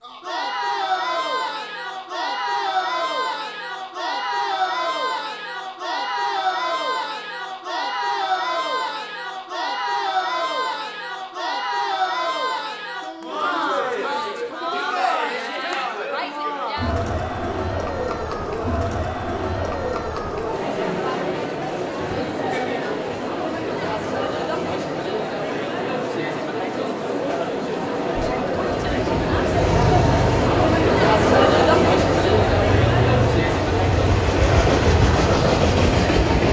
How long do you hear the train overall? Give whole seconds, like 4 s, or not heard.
8 s.